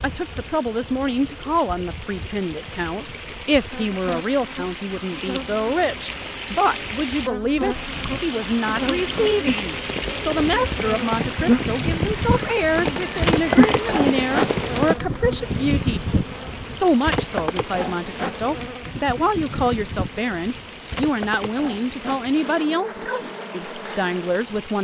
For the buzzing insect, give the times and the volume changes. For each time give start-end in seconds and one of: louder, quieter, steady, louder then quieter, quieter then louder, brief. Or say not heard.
0.0-24.7 louder then quieter.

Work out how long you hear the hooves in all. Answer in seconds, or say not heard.
7 s.